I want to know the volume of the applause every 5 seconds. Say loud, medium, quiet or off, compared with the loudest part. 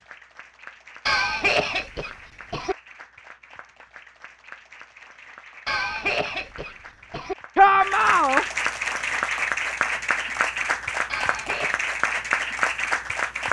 quiet, loud, loud.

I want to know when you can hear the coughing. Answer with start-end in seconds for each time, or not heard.
1.1-2.8, 5.7-7.3, 11.1-11.8.